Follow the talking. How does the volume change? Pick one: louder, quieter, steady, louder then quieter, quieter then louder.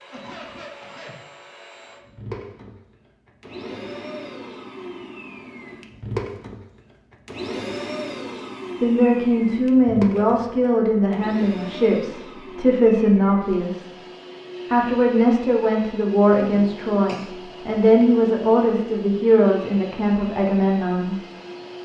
steady.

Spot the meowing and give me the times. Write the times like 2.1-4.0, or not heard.
not heard.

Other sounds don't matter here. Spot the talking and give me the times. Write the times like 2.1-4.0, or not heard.
8.8-13.8, 14.7-21.2.